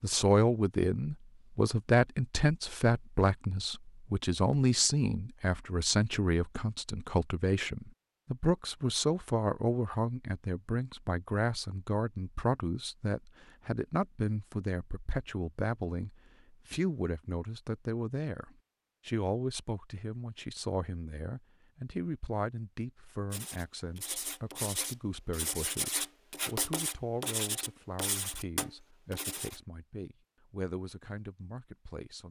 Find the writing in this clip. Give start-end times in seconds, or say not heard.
23.3-29.6.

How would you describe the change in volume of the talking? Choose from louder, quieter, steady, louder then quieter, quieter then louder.
quieter.